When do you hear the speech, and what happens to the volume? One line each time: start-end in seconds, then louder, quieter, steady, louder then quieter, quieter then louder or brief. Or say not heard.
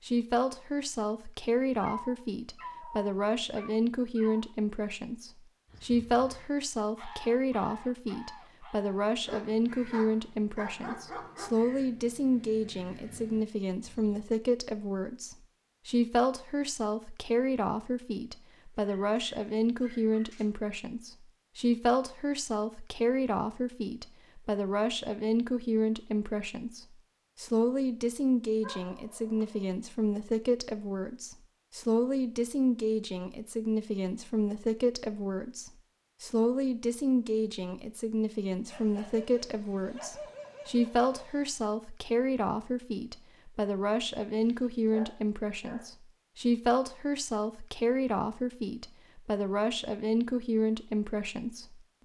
0.0-52.0 steady.